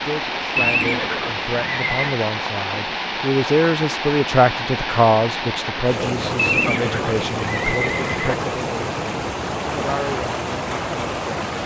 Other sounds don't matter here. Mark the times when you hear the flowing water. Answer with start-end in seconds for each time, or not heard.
0.0-11.6.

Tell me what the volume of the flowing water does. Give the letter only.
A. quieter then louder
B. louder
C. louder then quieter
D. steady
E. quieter
D.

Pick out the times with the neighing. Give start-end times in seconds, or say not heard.
0.6-2.1, 6.3-8.3.